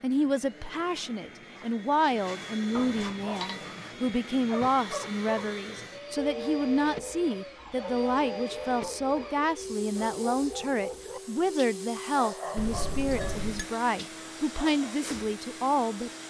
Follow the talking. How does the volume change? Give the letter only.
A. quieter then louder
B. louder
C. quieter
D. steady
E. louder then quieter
D.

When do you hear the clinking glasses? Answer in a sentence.
The clinking glasses can be heard from 2.7 to 3.8 s and from 12.6 to 13.7 s.